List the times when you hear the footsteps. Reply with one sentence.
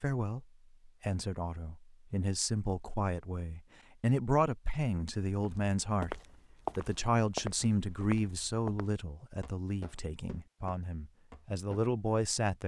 You can hear the footsteps from 5.4 to 11.8 s.